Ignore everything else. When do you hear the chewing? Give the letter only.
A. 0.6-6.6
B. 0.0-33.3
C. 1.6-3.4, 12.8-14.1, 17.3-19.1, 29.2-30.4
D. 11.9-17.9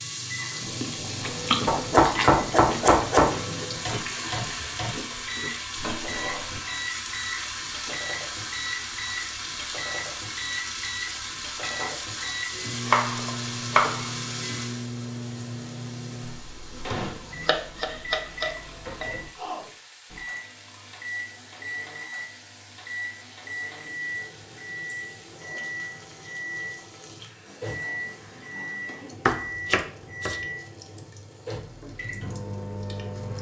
A.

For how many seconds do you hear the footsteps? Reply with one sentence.
The footsteps can't be heard in this clip.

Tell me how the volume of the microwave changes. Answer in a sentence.
The loudness of the microwave stays about the same.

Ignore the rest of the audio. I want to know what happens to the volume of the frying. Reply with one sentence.
The volume of the frying goes down.